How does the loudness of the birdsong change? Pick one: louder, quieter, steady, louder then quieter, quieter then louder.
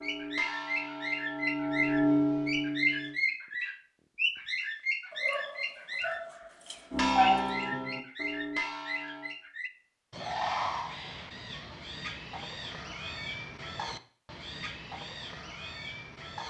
quieter.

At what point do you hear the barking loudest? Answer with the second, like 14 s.
7 s.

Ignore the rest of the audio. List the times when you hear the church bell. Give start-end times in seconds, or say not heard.
0.0-3.2, 6.9-9.3.